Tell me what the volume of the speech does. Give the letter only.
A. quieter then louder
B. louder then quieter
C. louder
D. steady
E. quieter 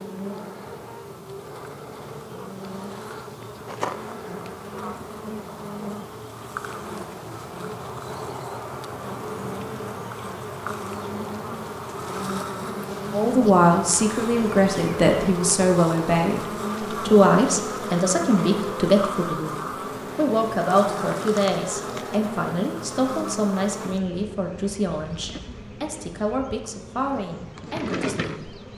E.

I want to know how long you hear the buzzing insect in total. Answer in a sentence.
The buzzing insect can be heard for 29 seconds in total.